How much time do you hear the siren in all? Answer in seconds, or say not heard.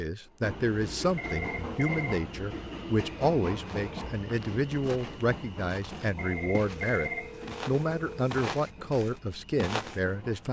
not heard.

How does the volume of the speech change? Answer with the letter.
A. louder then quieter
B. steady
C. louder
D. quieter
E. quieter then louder
B.